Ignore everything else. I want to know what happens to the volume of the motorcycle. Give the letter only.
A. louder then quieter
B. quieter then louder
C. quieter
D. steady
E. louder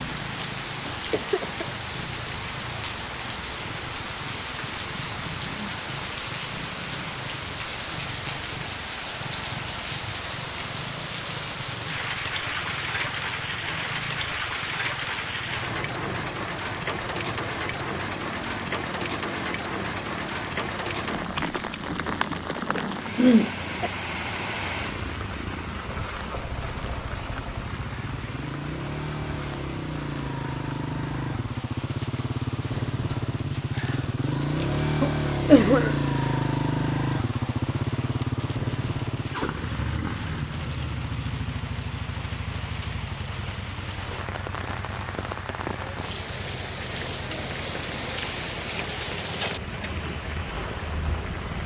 A.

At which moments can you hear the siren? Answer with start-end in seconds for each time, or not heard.
not heard.